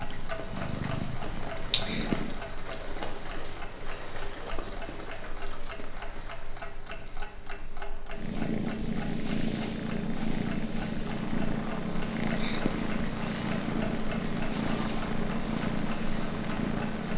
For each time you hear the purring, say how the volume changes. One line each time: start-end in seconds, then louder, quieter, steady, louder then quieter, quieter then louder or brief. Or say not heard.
0.0-2.4 brief
8.1-17.1 steady.